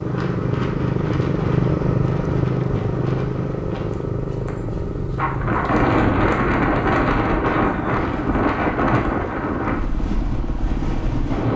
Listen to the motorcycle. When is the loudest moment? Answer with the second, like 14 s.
2 s.